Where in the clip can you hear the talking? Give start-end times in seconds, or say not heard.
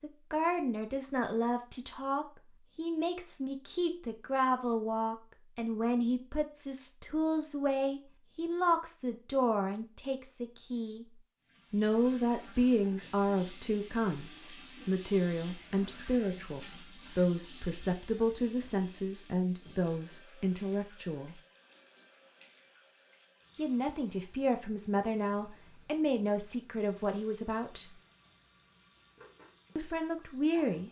0.0-11.1, 11.7-21.4, 23.6-27.9, 29.8-30.8.